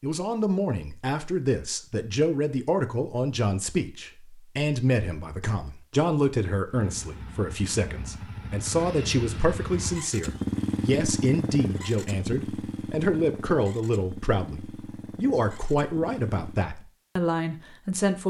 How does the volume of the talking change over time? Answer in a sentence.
The volume of the talking stays about the same.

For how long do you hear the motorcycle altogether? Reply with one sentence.
The motorcycle can be heard for 10 seconds in total.